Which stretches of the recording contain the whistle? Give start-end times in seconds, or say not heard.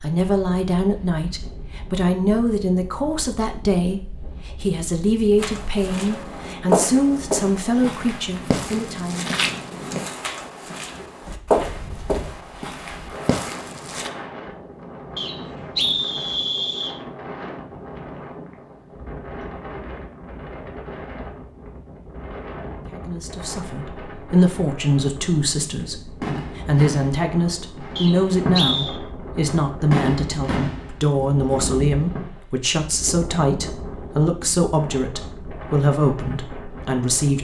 15.2-16.9, 27.9-28.9.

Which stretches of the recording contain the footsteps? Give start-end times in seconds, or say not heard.
5.4-14.1.